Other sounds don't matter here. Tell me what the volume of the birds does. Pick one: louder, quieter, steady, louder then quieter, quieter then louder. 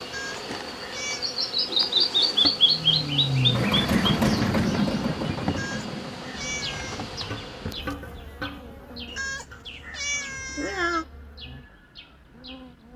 quieter.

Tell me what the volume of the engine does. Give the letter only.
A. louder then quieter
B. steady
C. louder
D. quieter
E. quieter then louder
D.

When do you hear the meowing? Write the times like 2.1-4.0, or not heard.
0.1-1.3, 5.5-7.0, 9.1-11.1.